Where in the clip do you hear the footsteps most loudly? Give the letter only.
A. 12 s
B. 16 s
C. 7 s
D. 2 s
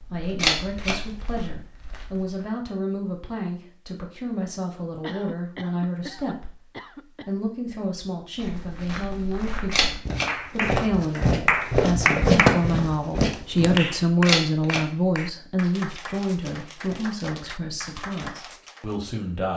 A.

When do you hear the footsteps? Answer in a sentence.
The footsteps can be heard from 0.0 to 2.5 s and from 8.3 to 13.8 s.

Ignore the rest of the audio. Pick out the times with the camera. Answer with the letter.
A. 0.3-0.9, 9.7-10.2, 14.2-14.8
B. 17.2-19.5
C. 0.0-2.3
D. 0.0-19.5
A.